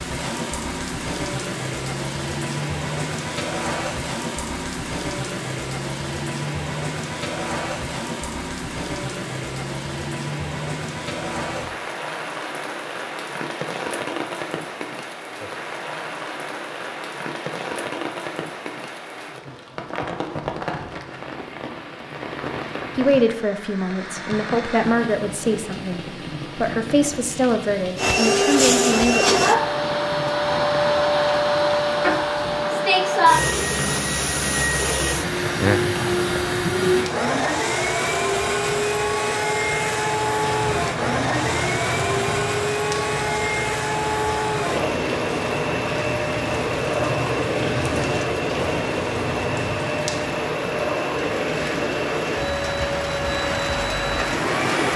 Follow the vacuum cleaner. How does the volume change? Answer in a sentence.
The loudness of the vacuum cleaner goes down.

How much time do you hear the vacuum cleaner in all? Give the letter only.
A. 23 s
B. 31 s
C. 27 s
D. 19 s
C.